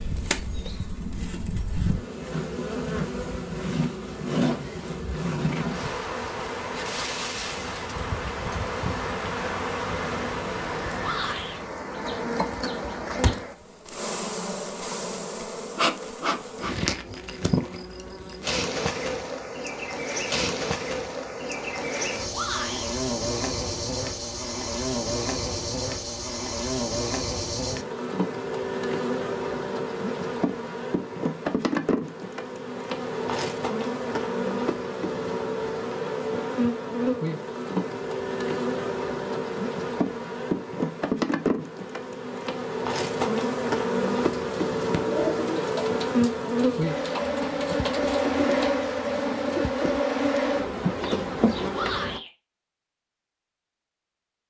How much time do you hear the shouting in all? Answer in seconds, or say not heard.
2 s.